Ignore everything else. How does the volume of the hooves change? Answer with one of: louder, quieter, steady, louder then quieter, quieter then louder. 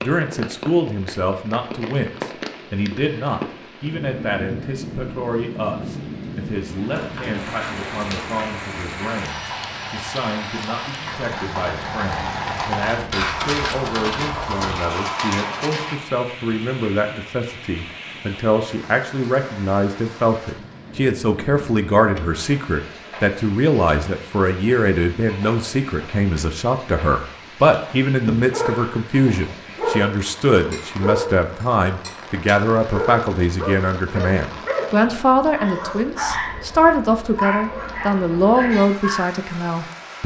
louder.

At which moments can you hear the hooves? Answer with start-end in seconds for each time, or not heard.
7.0-16.1.